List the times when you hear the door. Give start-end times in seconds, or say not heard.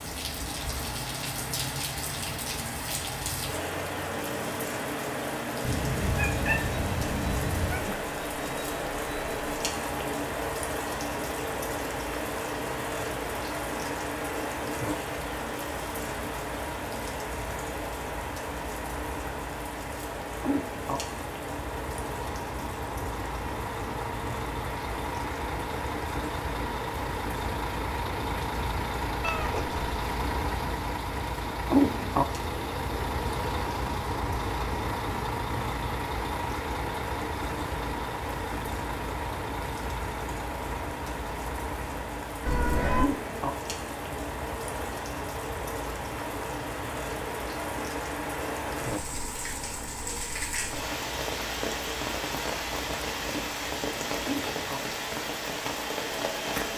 not heard.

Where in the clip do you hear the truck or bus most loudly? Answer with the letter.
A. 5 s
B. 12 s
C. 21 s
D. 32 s
D.